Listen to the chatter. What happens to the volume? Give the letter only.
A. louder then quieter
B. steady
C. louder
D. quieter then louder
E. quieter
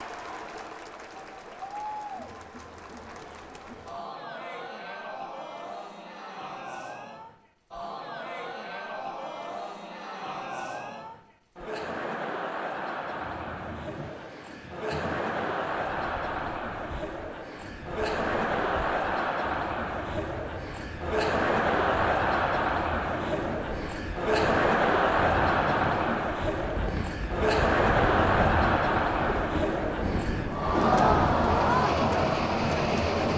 C.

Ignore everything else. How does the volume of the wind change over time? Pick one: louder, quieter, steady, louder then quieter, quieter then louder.
louder.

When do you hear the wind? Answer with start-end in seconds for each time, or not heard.
13.1-33.3.